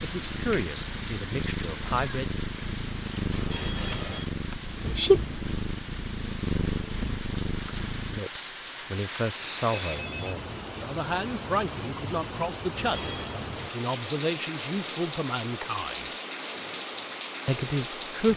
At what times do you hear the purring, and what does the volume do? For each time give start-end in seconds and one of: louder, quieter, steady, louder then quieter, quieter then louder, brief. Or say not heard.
0.0-8.2 louder then quieter.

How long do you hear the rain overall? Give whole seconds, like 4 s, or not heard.
18 s.